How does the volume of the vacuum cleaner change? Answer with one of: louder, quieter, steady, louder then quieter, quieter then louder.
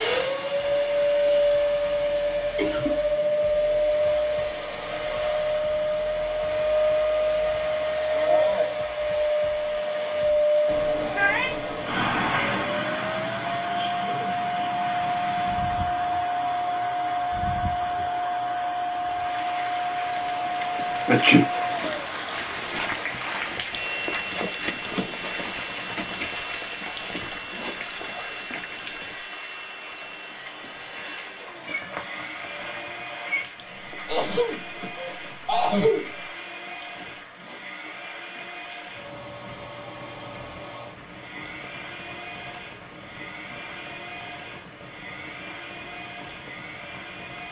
quieter.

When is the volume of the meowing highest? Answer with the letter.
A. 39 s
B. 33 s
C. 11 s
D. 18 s
C.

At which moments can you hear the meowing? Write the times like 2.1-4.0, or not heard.
10.7-12.7, 31.6-33.5.